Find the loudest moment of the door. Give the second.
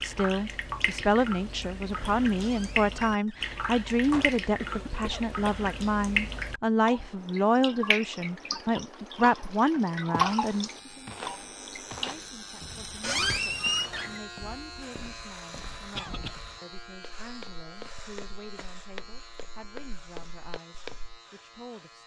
13 s.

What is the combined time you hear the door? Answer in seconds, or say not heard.
3 s.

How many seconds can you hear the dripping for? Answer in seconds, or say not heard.
12 s.